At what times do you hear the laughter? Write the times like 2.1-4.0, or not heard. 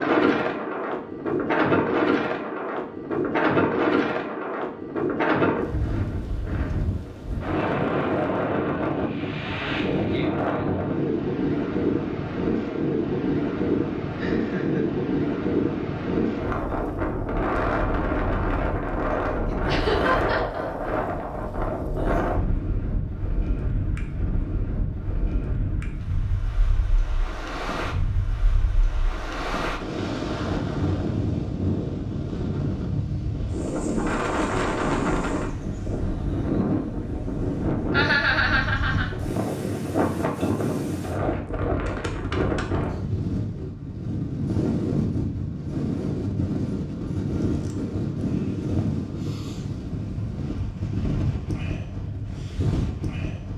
14.2-14.8, 19.6-20.9, 37.9-39.1.